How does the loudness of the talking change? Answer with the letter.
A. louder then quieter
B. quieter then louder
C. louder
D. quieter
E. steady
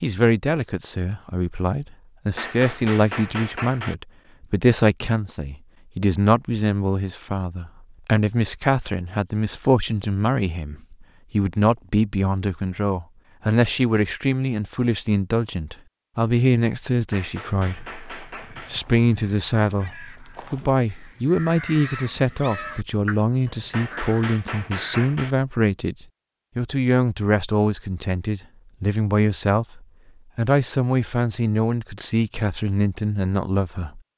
E.